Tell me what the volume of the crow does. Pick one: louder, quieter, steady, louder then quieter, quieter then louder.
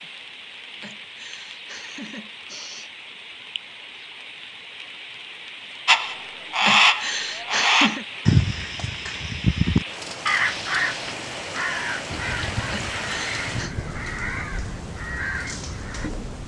quieter.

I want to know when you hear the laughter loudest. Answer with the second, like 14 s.
8 s.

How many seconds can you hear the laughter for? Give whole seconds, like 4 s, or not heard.
5 s.